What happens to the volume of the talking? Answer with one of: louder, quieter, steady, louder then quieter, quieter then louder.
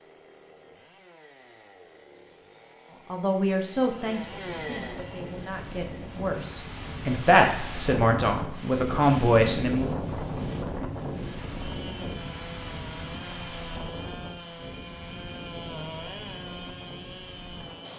quieter then louder.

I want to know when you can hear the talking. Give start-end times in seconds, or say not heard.
3.1-10.0.